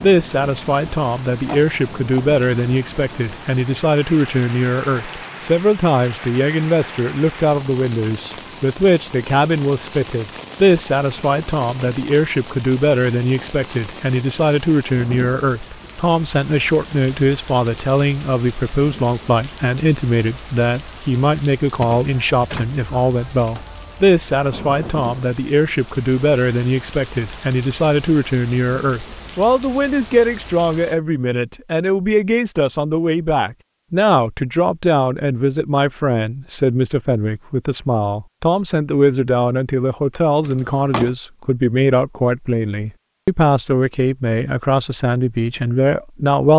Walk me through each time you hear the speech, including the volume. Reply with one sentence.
The speech can be heard from 0.0 to 46.5 s, at a steady volume.